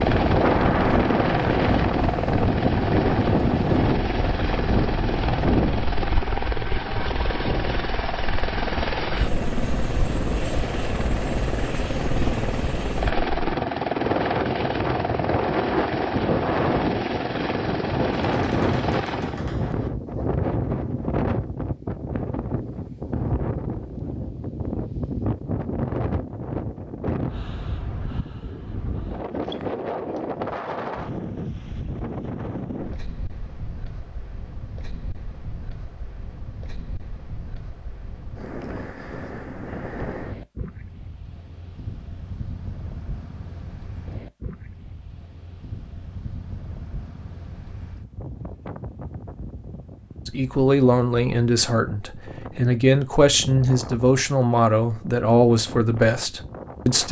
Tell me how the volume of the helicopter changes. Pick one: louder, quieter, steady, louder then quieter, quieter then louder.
steady.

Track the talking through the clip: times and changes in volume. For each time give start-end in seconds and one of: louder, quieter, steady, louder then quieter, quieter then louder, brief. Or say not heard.
50.2-57.0 steady.